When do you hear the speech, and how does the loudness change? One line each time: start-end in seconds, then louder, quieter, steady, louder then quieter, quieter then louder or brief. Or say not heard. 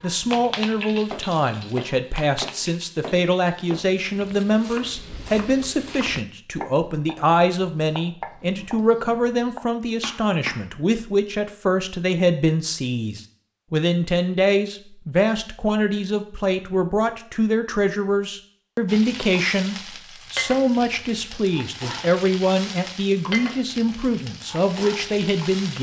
0.0-25.7 steady.